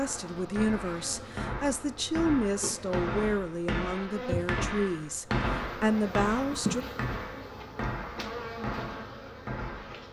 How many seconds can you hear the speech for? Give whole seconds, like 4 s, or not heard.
7 s.